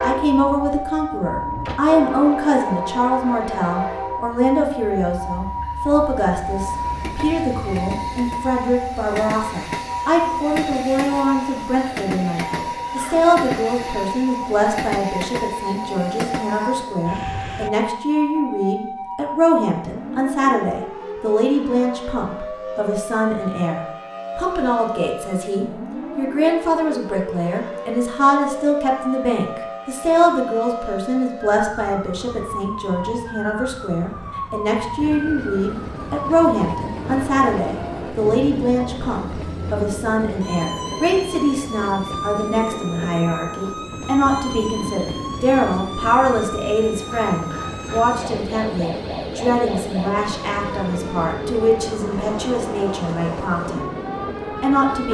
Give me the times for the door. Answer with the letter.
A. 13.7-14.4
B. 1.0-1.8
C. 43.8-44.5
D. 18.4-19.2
B.